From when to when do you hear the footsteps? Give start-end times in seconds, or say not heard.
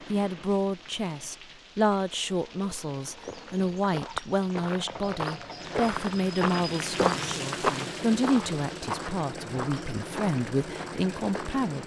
3.0-11.6.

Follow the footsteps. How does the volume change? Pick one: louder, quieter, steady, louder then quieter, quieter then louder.
louder then quieter.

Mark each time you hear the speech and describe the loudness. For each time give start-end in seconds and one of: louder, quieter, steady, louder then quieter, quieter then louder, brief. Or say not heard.
0.1-11.8 steady.